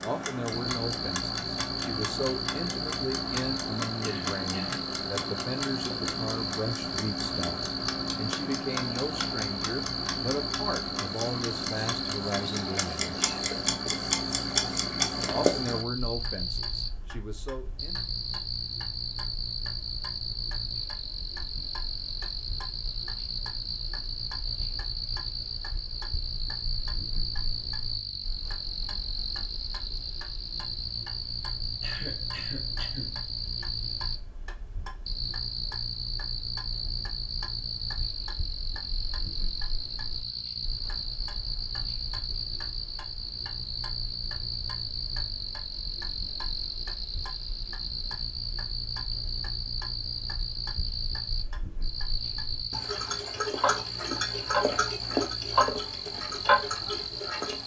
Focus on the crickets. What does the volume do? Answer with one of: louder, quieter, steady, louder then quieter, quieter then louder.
steady.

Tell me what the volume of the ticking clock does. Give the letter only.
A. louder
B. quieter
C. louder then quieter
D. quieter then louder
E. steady
D.